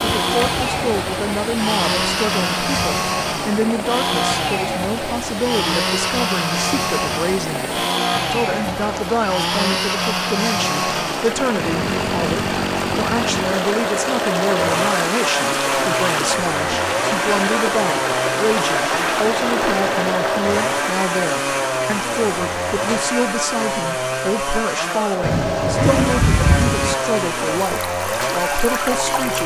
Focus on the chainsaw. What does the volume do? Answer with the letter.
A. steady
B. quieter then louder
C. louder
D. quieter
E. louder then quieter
A.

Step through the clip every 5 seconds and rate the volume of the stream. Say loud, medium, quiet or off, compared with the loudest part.
medium, medium, loud, loud, medium, medium.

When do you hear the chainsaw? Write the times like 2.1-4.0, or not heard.
0.0-29.4.